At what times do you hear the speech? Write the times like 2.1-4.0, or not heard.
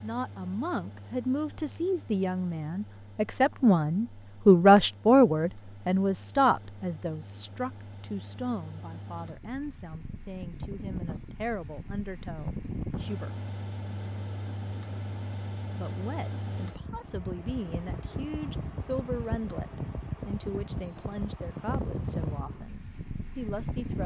0.0-13.3, 15.8-24.0.